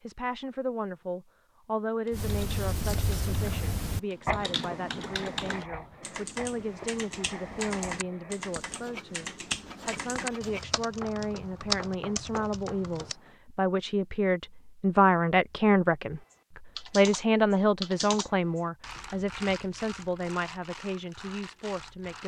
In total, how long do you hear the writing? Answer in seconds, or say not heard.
11 s.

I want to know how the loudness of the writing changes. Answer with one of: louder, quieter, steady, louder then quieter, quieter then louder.
quieter.